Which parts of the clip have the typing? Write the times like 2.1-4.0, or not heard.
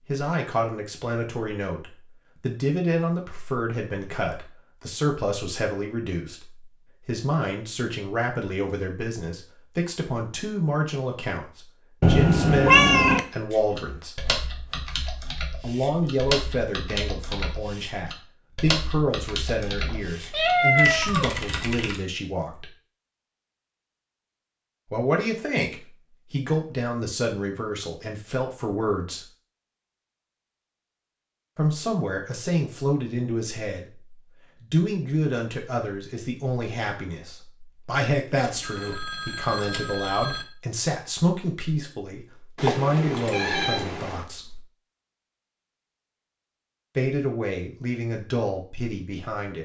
13.5-22.0.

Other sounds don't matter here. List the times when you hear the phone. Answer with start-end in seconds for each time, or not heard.
38.4-40.5.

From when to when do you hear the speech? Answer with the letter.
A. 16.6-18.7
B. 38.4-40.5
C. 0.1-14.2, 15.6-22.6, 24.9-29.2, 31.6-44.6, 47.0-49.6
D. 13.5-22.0
C.